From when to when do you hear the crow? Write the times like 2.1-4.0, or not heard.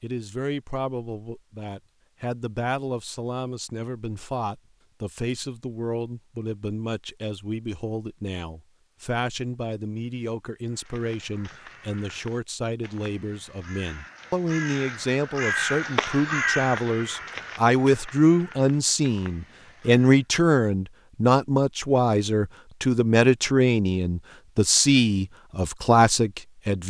10.7-20.2.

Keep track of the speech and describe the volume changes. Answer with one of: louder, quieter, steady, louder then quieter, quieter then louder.
louder.